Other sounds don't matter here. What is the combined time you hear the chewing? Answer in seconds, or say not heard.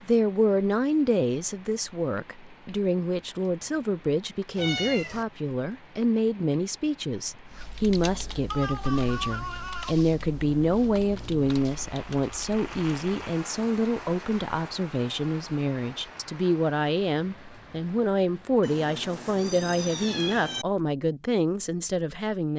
not heard.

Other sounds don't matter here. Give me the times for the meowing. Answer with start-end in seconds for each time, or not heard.
4.5-5.2, 8.5-10.1, 18.6-20.6.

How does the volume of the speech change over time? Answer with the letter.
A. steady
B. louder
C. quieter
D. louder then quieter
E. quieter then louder
A.